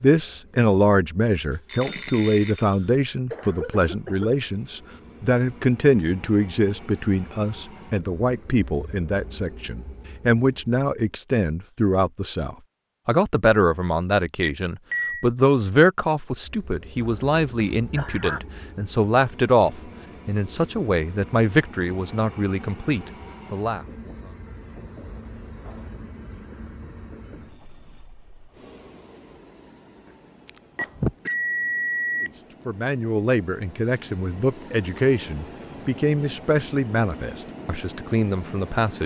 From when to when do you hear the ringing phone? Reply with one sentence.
You can hear the ringing phone from 1.6 to 2.8 s, from 14.4 to 15.2 s and from 30.8 to 32.3 s.